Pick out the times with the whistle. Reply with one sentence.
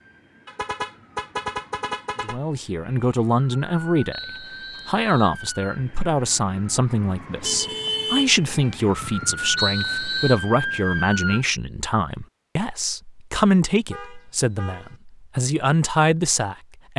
You can hear the whistle from 4.1 to 5.3 s and from 9.6 to 10.4 s.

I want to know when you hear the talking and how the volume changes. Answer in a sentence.
You can hear the talking from 2.2 to 16.9 s, at a steady volume.